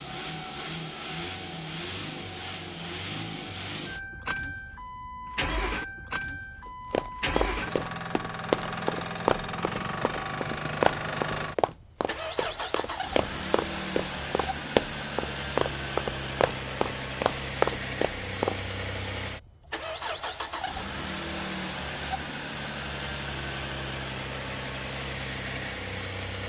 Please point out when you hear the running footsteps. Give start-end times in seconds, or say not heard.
6.9-18.6.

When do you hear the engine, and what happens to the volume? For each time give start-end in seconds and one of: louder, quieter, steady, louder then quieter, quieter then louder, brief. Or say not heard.
0.0-26.4 steady.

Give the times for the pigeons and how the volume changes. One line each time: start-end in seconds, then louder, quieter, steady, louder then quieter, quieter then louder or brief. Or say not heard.
not heard.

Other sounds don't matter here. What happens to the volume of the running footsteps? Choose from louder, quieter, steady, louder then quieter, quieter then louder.
quieter then louder.